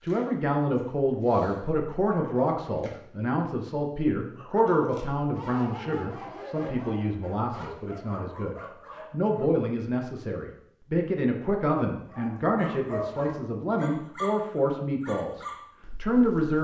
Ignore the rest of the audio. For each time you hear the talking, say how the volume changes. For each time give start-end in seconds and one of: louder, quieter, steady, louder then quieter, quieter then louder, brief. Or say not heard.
0.0-16.5 steady.